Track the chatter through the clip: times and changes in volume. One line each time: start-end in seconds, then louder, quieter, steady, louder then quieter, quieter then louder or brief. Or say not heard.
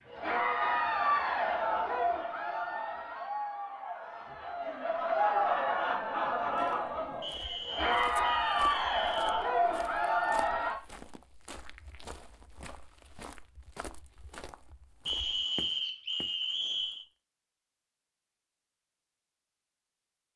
0.1-10.8 quieter then louder.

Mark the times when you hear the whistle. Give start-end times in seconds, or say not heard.
0.5-2.2, 7.2-9.5, 15.1-17.1.